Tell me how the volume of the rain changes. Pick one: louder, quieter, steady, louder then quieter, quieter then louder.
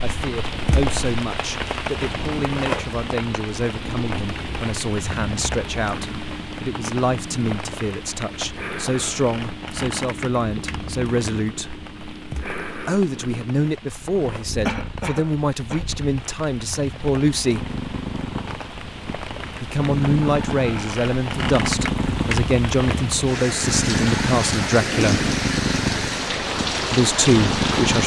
quieter then louder.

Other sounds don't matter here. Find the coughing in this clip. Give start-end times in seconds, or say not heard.
14.7-15.8.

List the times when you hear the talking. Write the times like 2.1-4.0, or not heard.
0.0-11.7, 12.8-17.7, 19.6-25.2, 26.9-28.0.